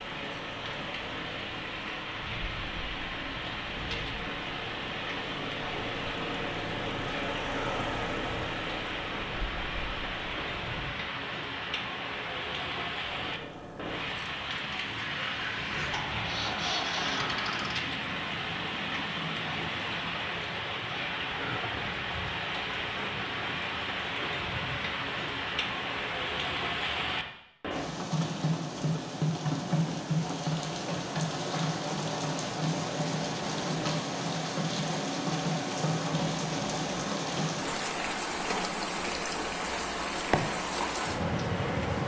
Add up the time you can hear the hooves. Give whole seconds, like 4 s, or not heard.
not heard.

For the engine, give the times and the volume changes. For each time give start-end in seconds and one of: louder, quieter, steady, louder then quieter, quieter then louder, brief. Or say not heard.
0.0-10.8 louder then quieter
13.1-20.2 louder then quieter.